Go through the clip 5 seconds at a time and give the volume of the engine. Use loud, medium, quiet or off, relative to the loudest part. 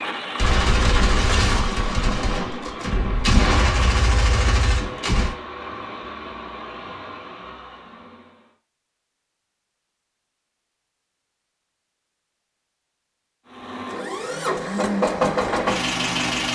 medium, quiet, medium, loud.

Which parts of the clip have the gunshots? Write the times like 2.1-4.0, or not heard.
0.3-5.3.